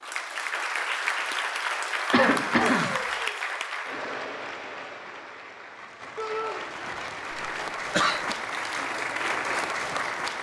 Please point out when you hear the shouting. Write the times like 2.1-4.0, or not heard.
2.5-3.5, 6.2-6.6.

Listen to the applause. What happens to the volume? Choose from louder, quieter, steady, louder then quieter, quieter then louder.
quieter then louder.